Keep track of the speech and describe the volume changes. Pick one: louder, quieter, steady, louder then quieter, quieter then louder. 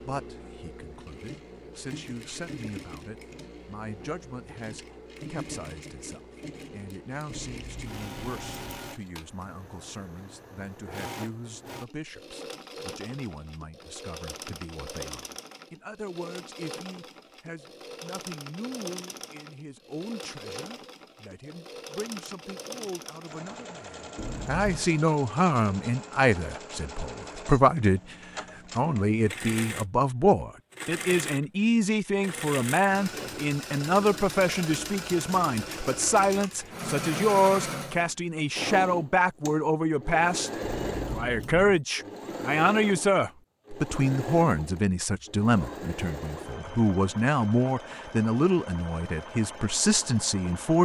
louder.